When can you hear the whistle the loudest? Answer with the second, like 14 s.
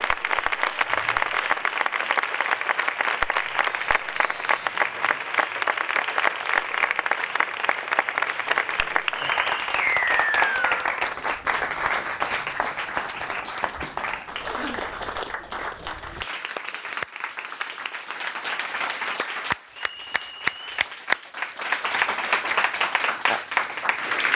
10 s.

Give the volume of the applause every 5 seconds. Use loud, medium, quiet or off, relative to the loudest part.
loud, loud, loud, medium, loud.